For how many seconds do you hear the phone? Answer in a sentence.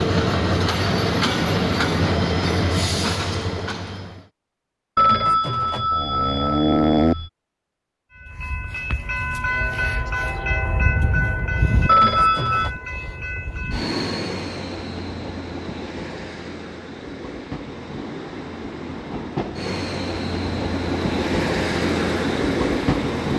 The phone can be heard for 3 seconds in total.